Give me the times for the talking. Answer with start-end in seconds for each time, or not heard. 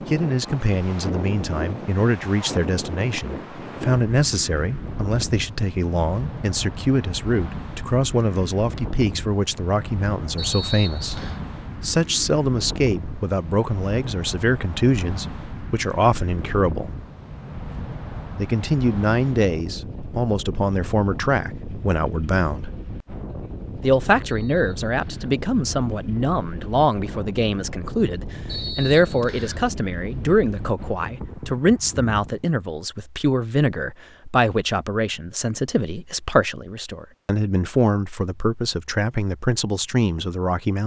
0.1-16.9, 18.4-22.7, 23.8-40.8.